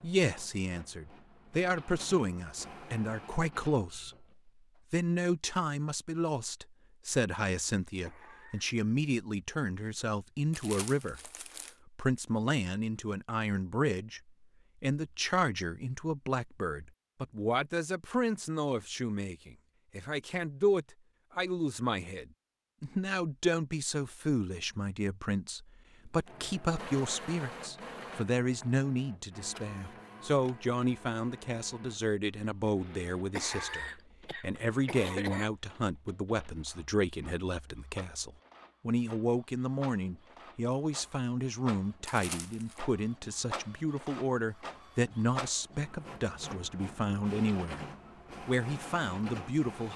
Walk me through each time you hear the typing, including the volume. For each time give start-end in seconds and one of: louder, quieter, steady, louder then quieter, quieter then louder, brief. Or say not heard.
not heard.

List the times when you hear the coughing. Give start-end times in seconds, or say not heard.
8.1-8.8, 33.4-35.5.